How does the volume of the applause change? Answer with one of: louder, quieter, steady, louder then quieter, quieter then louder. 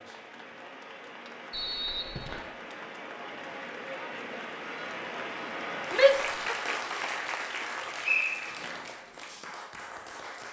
louder then quieter.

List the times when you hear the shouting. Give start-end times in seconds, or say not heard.
5.9-6.5.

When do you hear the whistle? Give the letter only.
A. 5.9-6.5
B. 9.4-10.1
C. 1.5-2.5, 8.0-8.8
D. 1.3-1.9
C.